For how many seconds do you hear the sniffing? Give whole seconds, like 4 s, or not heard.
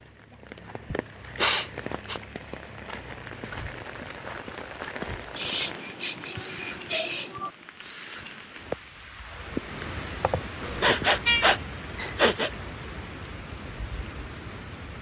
6 s.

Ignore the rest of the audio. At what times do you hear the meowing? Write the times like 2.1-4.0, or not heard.
10.6-11.4.